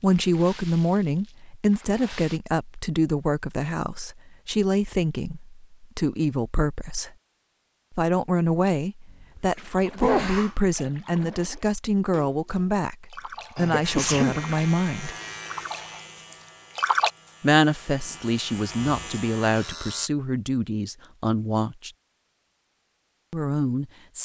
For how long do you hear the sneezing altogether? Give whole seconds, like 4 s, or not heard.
2 s.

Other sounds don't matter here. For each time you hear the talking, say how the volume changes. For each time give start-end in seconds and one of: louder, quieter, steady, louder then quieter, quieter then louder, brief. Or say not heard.
0.0-7.1 steady
7.9-15.2 steady
17.4-21.9 steady
23.3-24.2 brief.